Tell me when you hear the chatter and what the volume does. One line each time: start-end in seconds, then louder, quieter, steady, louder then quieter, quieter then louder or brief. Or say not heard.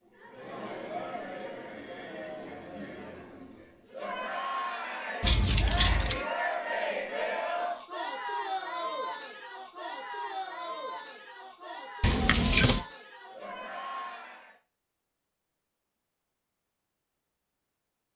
0.0-14.6 louder then quieter.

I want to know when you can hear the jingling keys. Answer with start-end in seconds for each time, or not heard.
5.2-6.2, 12.0-12.8.